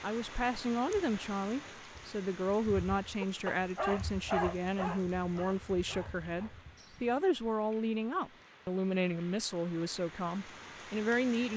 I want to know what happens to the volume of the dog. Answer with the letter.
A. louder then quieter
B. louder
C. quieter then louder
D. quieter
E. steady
D.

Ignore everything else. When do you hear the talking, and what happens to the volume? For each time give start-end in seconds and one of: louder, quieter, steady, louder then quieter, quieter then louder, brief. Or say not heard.
0.0-11.5 steady.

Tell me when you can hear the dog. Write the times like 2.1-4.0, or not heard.
3.2-7.2.